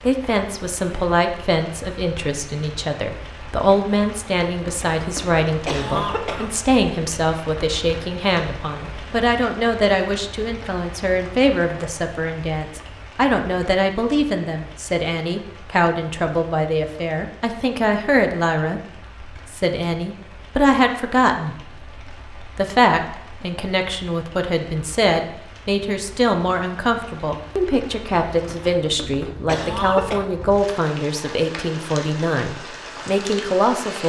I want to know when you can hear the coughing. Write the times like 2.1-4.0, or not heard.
4.7-6.7, 28.4-30.2.